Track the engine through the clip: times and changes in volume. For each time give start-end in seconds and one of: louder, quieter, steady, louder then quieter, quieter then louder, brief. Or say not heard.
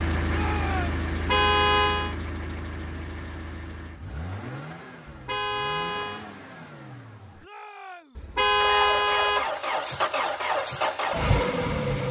0.0-12.0 quieter then louder.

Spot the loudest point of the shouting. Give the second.
1 s.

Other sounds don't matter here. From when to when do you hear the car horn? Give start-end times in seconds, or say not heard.
1.1-2.1, 5.0-6.2, 8.2-9.4.